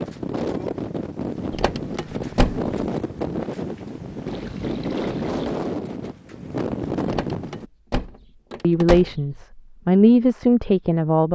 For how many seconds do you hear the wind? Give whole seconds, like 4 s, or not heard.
8 s.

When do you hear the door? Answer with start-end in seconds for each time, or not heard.
1.5-2.6, 7.0-9.3.